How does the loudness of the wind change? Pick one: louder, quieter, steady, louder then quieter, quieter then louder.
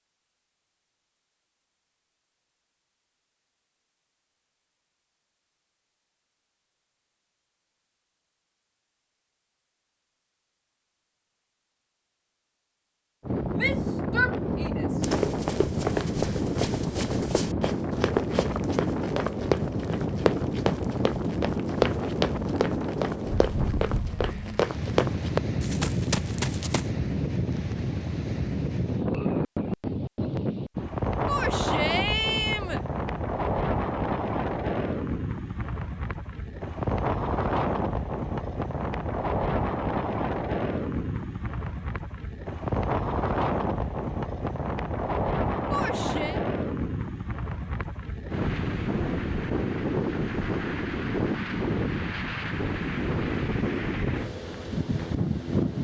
steady.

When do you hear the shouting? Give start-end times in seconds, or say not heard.
13.6-15.0, 31.2-32.8, 45.7-46.4.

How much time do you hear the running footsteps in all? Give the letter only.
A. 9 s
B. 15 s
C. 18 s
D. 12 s
D.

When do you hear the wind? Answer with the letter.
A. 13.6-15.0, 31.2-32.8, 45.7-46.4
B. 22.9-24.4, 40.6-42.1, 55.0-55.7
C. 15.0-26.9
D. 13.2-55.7
D.